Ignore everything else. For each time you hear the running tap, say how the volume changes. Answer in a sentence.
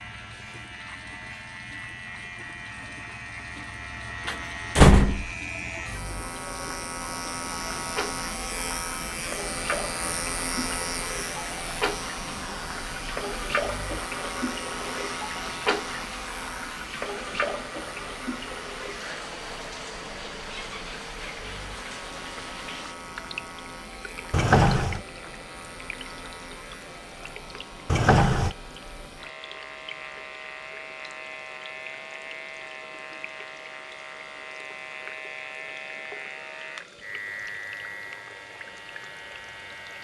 You can hear the running tap from 0.0 to 39.9 s, getting louder then quieter.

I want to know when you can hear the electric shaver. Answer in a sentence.
You can hear the electric shaver from 0.0 to 39.9 s.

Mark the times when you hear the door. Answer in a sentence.
The door can be heard from 4.2 to 5.3 s, from 24.3 to 25.0 s and from 27.9 to 28.5 s.